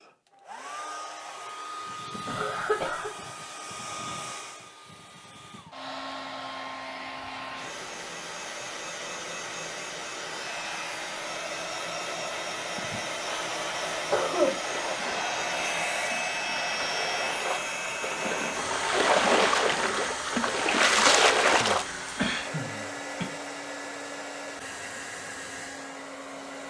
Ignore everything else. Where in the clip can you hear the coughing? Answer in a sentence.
You can hear the coughing from 2.2 to 3.1 s, from 12.8 to 14.6 s and from 21.6 to 23.2 s.